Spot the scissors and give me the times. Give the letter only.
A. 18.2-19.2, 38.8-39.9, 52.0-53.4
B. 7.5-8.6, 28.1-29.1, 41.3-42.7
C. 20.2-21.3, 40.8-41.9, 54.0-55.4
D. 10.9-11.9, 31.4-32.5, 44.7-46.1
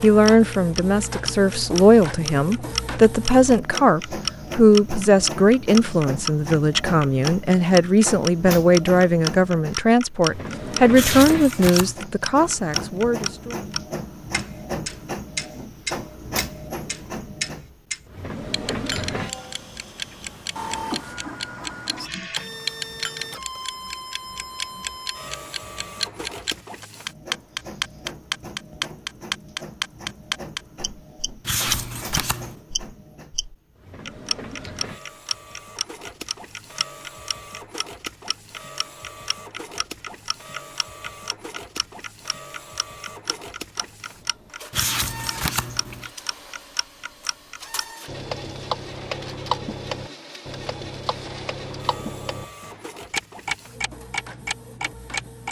D.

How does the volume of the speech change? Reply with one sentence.
The volume of the speech stays about the same.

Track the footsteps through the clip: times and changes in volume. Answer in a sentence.
You can't hear the footsteps here.